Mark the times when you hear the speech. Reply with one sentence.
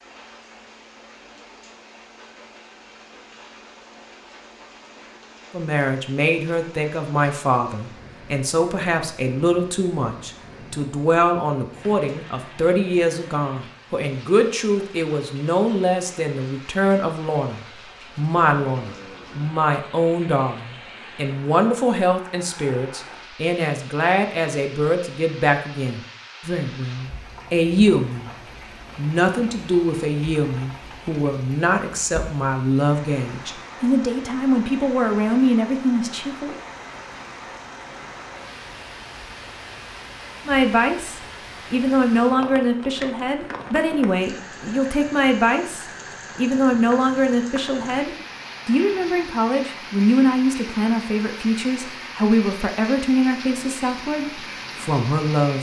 You can hear the speech from 5.5 to 28.4 s, from 28.9 to 36.5 s and from 40.5 to 55.5 s.